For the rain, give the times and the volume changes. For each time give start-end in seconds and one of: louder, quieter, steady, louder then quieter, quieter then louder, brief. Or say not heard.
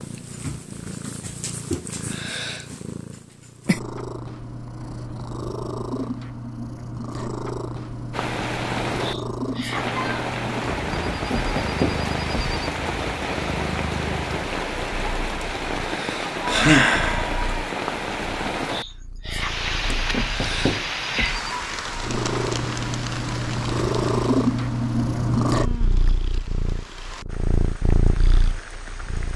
8.1-29.3 quieter.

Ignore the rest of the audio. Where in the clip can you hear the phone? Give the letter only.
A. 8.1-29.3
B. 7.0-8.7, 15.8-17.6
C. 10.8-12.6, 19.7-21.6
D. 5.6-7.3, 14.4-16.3
C.